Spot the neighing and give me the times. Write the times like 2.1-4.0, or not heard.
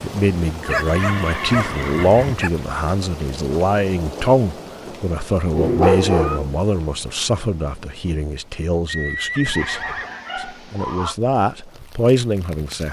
0.7-2.4, 5.6-6.4, 8.8-10.1.